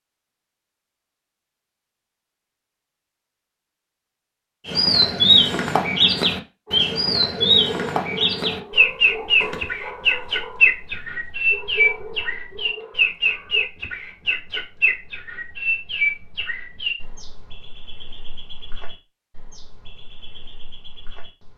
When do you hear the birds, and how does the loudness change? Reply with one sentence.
The birds can be heard from 4.7 to 21.5 s, getting quieter.